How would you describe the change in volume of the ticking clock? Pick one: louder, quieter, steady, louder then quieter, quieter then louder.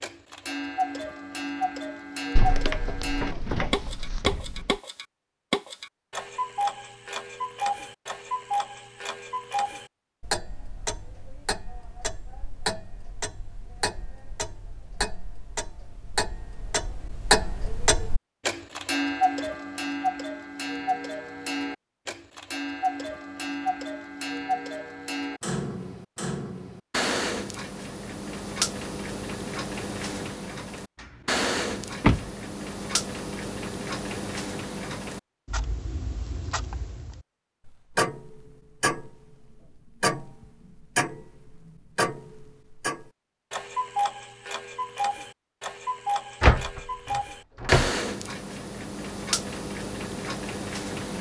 steady.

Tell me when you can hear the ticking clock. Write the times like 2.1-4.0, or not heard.
0.0-51.1.